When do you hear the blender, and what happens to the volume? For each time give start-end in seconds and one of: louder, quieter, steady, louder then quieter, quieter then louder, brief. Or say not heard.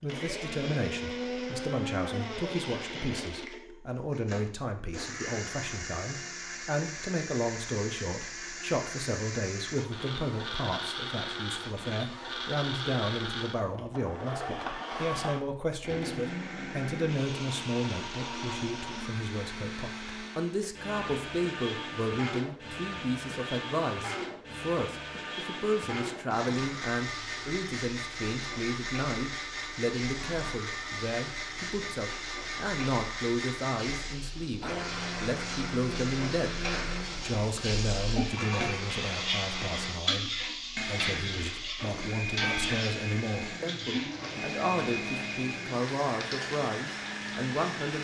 0.0-48.0 steady.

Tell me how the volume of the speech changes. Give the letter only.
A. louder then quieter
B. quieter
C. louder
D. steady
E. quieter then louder
D.